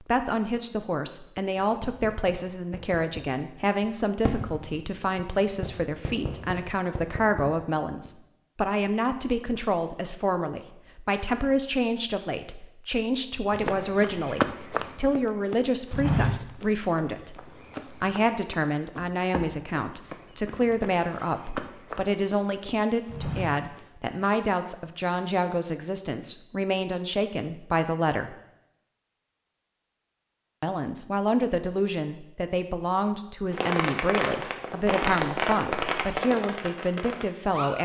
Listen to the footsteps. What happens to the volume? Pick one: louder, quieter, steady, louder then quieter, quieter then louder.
quieter then louder.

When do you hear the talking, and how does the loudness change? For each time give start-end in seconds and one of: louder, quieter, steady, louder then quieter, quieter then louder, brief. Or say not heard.
0.0-28.4 steady
30.6-37.8 steady.